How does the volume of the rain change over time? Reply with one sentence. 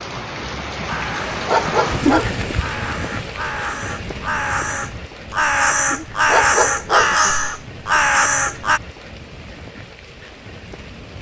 The volume of the rain goes down.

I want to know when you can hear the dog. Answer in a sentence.
The dog can be heard from 1.4 to 2.5 s and from 6.2 to 7.3 s.